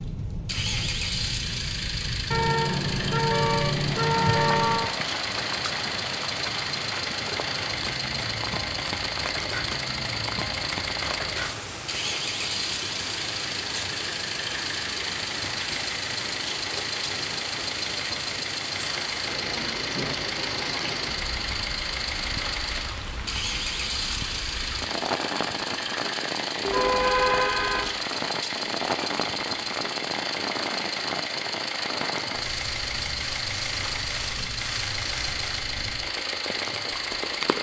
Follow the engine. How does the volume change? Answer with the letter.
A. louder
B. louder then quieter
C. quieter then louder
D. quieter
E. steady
E.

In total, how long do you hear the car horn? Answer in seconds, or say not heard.
4 s.